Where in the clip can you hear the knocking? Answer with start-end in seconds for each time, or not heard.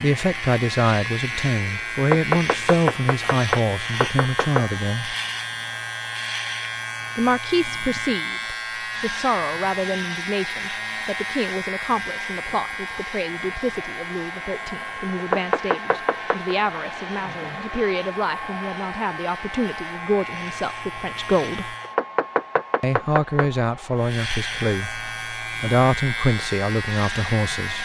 1.9-4.7, 15.2-16.6, 21.9-23.4.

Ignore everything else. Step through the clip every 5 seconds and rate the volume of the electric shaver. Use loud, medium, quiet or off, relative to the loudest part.
loud, loud, loud, medium, loud, loud.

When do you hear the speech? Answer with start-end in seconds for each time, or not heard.
0.0-5.2, 7.2-21.8, 22.8-27.7.